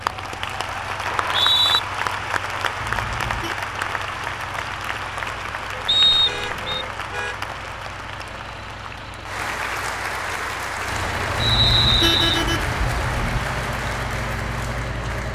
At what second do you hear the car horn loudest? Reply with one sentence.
The volume of the car horn peaks at 12 seconds.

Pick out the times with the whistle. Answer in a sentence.
You can hear the whistle from 1.1 to 1.8 s, from 5.8 to 6.8 s and from 11.4 to 12.4 s.